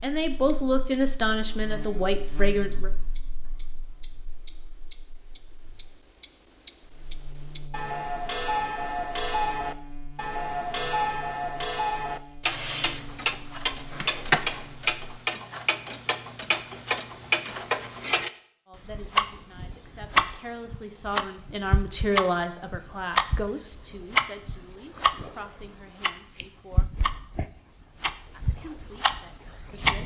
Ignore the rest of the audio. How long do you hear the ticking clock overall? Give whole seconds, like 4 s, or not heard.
30 s.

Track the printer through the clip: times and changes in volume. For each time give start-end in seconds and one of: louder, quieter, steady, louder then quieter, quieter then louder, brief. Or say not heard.
not heard.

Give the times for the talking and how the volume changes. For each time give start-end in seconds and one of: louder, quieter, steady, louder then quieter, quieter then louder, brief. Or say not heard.
0.0-2.9 brief
18.6-26.9 louder then quieter
28.3-30.0 brief.